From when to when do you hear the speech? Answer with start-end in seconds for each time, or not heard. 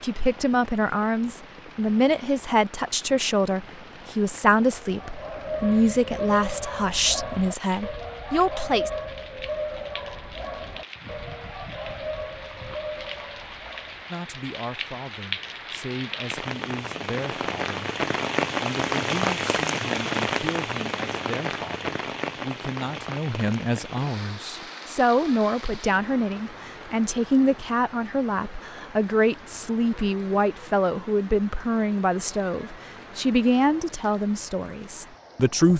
0.0-8.9, 14.1-17.8, 18.6-35.7.